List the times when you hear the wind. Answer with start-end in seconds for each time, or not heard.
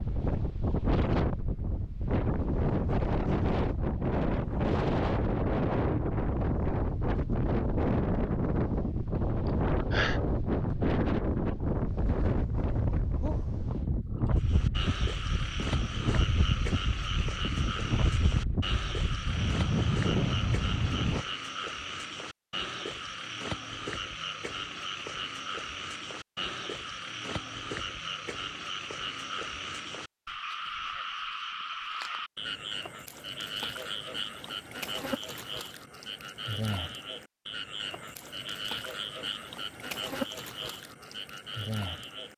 0.0-21.2.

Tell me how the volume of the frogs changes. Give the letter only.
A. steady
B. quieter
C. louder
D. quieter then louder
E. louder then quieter
A.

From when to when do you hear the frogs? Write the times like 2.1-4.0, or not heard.
14.3-42.3.